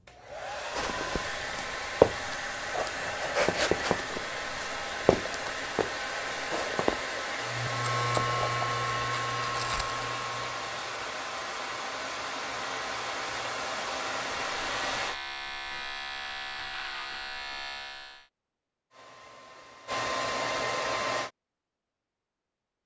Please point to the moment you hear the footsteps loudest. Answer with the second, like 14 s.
2 s.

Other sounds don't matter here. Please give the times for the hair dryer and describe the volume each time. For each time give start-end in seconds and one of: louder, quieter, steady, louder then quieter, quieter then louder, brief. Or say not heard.
0.0-15.2 steady
18.9-21.3 brief.